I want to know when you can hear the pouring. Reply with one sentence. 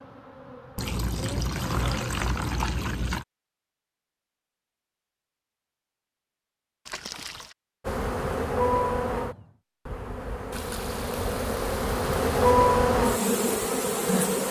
The pouring can be heard from 0.8 to 3.2 s, from 6.8 to 7.5 s and from 10.5 to 12.3 s.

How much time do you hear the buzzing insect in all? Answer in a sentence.
The buzzing insect can be heard for 9 seconds in total.